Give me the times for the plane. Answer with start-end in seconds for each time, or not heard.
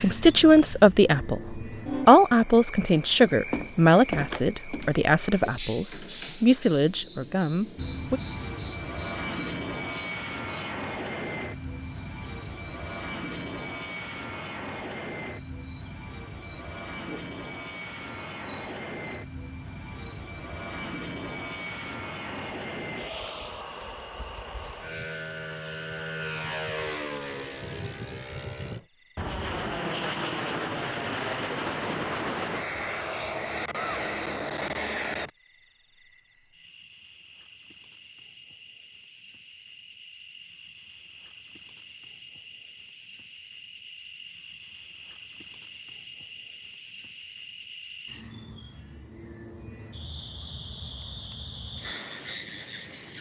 7.8-35.3.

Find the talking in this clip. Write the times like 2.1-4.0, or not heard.
0.0-8.2.